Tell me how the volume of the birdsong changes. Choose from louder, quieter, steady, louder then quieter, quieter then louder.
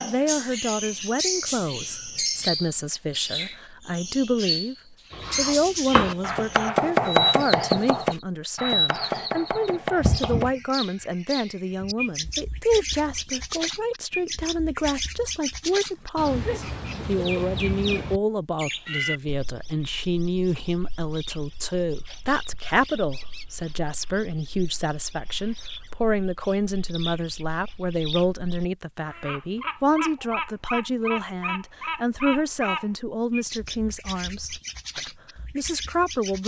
quieter then louder.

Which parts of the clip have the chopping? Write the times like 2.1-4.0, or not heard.
5.1-10.5.